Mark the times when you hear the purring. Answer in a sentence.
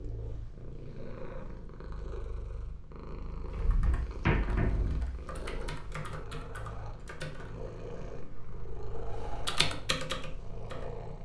The purring can be heard from 0.0 to 11.2 s.